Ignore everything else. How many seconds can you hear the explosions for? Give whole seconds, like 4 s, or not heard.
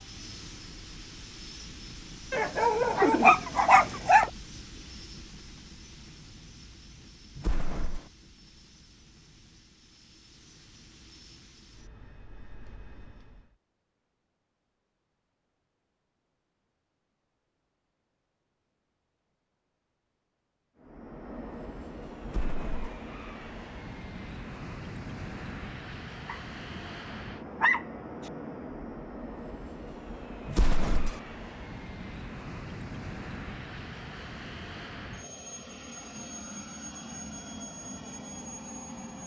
2 s.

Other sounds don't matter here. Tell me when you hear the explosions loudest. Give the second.
31 s.